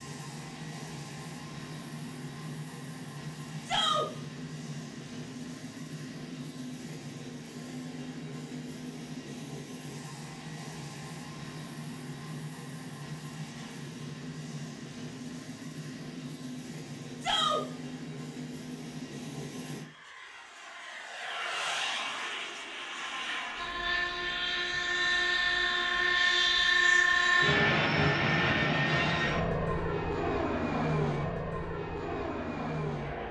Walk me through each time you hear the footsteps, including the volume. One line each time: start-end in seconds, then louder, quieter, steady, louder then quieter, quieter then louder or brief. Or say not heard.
not heard.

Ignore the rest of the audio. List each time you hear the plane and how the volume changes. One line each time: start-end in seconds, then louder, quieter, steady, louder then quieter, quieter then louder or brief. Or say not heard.
0.0-33.2 louder.